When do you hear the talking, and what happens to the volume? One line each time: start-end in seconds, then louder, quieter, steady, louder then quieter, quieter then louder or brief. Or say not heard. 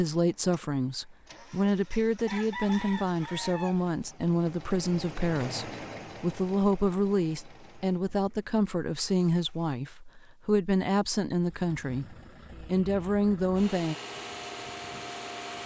0.0-13.9 steady.